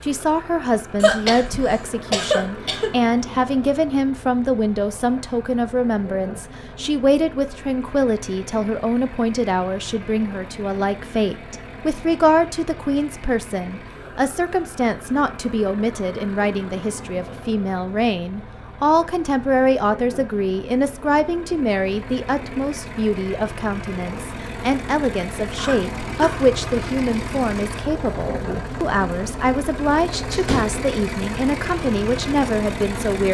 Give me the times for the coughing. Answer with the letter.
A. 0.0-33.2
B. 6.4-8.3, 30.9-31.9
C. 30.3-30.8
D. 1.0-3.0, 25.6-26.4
D.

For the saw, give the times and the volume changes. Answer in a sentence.
You can't hear the saw here.